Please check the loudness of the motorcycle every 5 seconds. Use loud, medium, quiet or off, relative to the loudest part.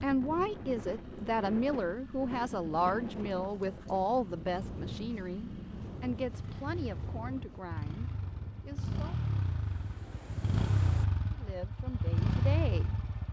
quiet, medium, loud.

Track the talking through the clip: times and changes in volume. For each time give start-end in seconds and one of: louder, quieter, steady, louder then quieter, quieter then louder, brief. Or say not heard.
0.0-9.2 quieter
11.3-13.0 brief.